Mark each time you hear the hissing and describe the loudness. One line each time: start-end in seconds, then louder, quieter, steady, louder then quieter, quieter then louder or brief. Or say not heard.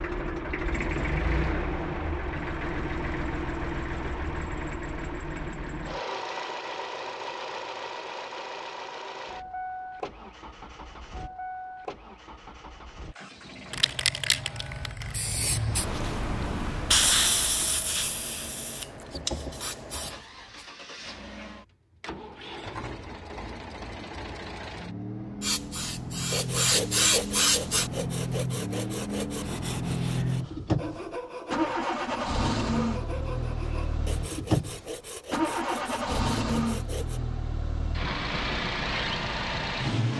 13.7-20.6 louder then quieter
25.4-27.9 brief.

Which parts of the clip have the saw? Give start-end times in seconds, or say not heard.
26.3-37.2.